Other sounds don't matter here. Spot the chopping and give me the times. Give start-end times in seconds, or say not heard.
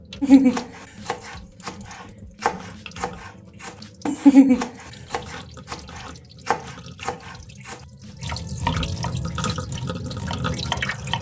0.2-1.7, 2.4-5.8, 6.5-11.1.